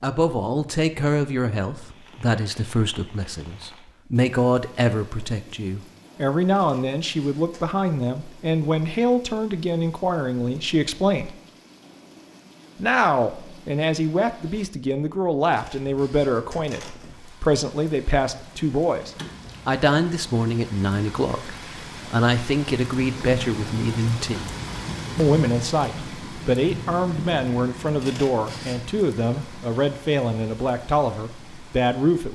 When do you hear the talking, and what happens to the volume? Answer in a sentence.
You can hear the talking from 0.0 to 11.3 s, at a steady volume; from 12.8 to 24.6 s, at a steady volume; and from 25.1 to 32.3 s, at a steady volume.